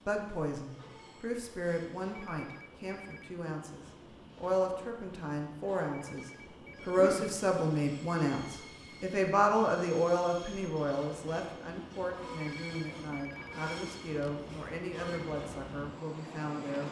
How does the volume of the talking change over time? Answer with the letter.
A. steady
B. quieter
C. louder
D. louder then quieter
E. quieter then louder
D.